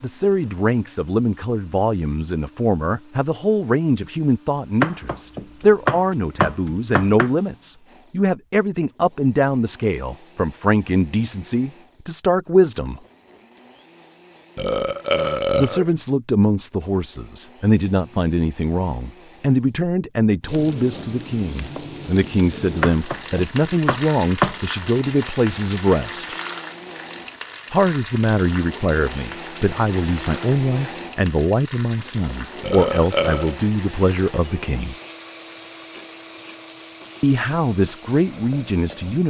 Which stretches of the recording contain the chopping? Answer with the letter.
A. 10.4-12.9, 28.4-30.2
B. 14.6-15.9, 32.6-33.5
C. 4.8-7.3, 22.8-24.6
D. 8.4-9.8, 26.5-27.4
C.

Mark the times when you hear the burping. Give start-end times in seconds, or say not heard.
14.6-15.9, 32.6-33.5.